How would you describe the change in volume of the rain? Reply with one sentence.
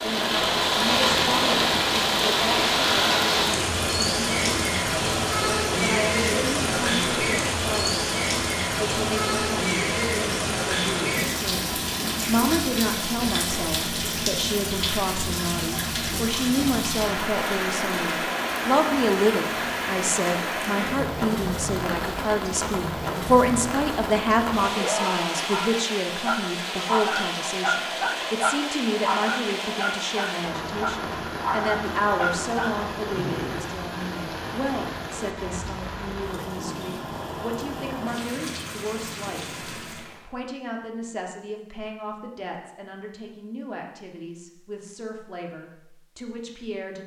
The volume of the rain goes down.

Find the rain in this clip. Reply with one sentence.
The rain can be heard from 0.0 to 40.3 s.